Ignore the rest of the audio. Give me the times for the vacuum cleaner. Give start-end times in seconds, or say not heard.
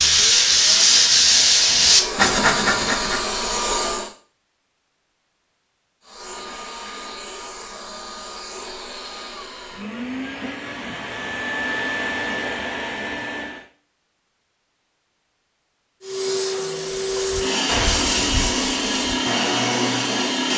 0.0-4.2, 6.0-13.7, 16.0-20.5.